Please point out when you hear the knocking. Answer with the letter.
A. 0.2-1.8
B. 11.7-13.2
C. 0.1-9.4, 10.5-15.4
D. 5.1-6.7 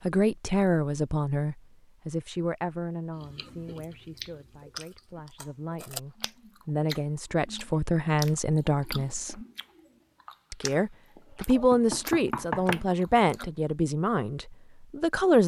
B.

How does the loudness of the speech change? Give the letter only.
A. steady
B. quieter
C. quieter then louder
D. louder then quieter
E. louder
C.